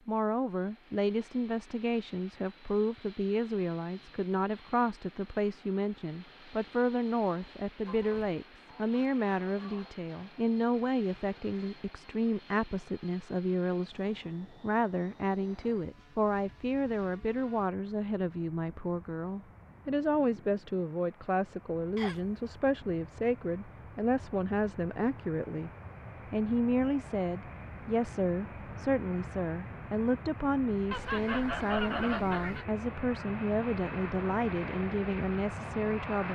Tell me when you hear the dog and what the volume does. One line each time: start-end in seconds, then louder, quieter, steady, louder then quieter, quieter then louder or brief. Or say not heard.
not heard.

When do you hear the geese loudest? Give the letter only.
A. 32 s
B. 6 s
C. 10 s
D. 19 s
A.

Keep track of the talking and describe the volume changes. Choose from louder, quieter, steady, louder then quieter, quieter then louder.
steady.